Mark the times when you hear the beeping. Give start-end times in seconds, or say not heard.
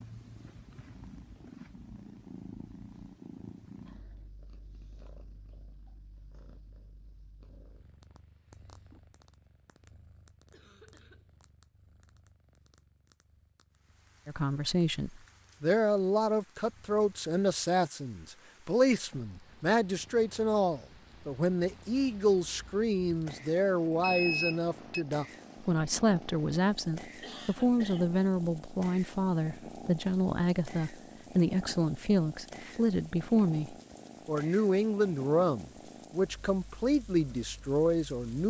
24.0-25.1.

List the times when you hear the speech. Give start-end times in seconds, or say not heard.
14.2-38.4.